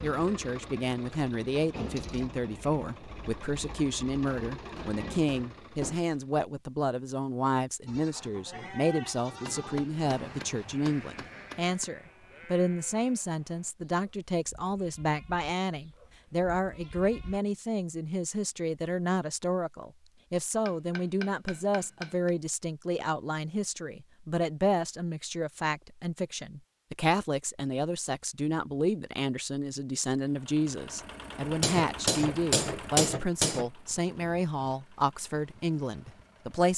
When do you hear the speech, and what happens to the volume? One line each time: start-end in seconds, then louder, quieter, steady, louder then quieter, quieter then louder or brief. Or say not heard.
0.0-36.7 steady.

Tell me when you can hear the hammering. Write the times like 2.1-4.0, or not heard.
4.2-6.0, 9.4-11.9, 20.6-22.4, 31.4-33.6.